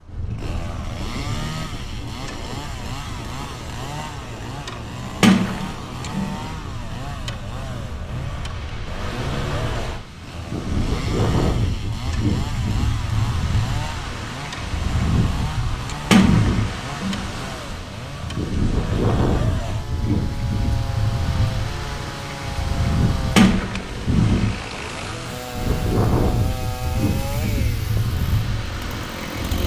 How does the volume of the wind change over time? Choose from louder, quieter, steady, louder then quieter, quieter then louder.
louder.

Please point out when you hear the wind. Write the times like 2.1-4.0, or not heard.
0.0-29.6.